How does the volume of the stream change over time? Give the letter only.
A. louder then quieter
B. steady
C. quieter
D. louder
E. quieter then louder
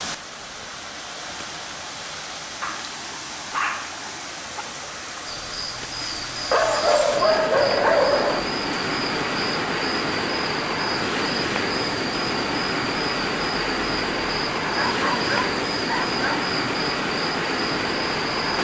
D.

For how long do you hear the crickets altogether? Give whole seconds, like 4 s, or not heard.
13 s.